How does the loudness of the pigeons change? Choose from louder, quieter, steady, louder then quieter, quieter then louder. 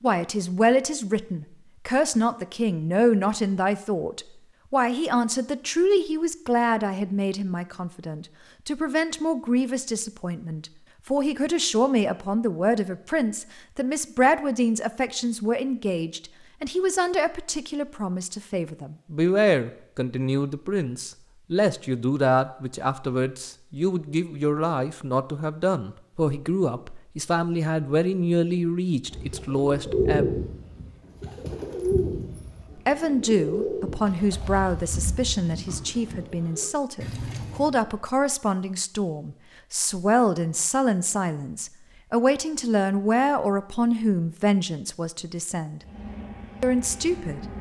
quieter.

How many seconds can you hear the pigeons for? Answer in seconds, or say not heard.
9 s.